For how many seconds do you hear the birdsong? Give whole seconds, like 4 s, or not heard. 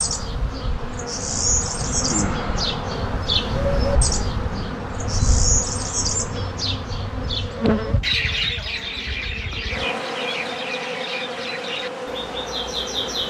13 s.